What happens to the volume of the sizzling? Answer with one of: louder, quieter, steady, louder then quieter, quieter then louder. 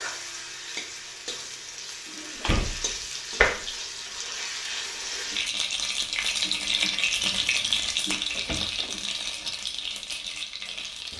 louder then quieter.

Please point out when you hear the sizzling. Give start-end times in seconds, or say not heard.
0.0-11.1.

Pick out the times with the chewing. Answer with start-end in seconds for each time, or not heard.
not heard.